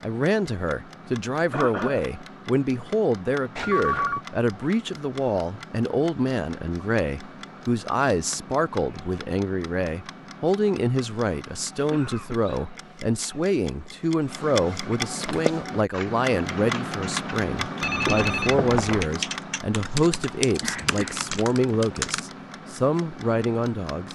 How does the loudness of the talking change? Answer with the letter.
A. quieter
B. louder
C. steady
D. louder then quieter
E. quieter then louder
C.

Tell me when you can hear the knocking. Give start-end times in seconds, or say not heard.
not heard.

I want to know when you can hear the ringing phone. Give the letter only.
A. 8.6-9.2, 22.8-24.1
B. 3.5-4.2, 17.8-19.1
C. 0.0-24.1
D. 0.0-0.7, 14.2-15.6
B.